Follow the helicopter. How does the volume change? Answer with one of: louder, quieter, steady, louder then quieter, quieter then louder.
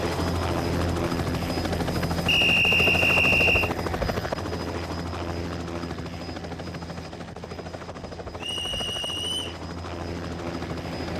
quieter.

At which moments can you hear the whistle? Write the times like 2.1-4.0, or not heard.
2.2-3.7, 8.3-9.6.